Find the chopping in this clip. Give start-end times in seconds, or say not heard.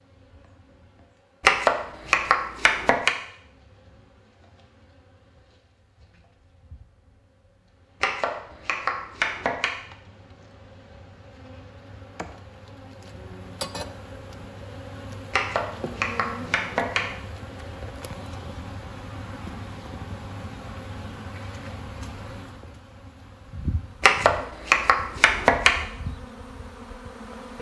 1.4-3.1, 8.0-9.7, 15.3-17.1, 24.0-25.9.